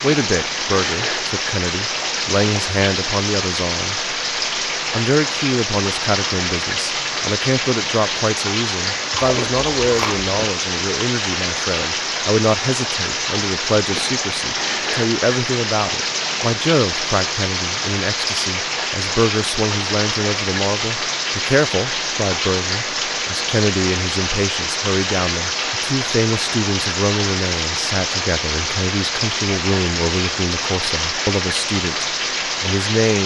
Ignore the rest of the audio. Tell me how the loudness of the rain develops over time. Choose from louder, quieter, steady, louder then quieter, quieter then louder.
steady.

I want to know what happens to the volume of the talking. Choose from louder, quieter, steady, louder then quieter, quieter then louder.
steady.